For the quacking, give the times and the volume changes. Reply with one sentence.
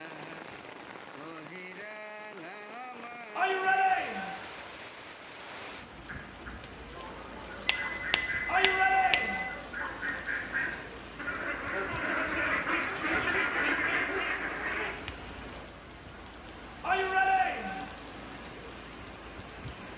You can hear the quacking from 6.0 to 14.9 s, getting louder.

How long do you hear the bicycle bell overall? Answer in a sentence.
The bicycle bell can be heard for 2 seconds in total.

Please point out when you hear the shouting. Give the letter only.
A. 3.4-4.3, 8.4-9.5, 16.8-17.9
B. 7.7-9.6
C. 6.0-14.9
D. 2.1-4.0
A.